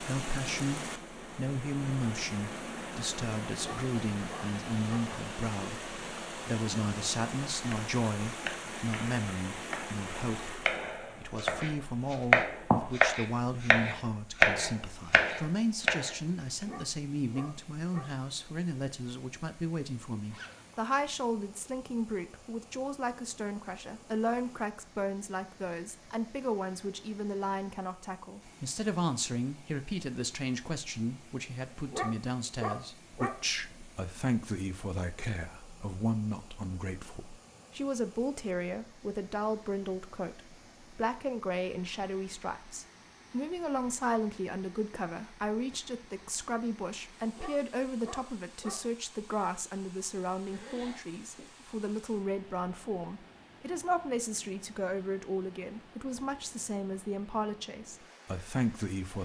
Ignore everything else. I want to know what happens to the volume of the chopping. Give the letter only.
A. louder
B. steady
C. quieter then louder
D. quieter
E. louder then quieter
A.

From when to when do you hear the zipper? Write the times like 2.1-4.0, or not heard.
20.2-20.9, 50.5-51.6.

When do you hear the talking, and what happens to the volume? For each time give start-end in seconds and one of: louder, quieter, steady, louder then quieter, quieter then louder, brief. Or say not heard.
0.0-59.2 steady.